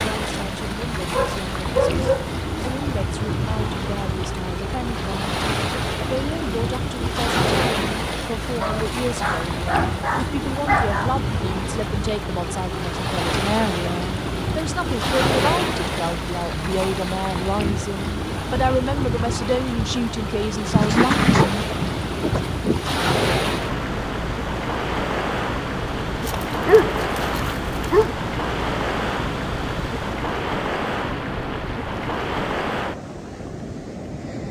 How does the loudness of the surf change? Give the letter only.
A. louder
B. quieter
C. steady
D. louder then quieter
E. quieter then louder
C.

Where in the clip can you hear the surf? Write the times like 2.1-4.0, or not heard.
0.0-34.4.